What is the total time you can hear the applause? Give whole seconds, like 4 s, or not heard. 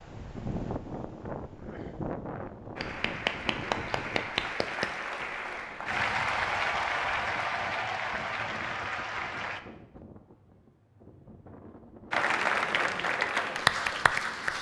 9 s.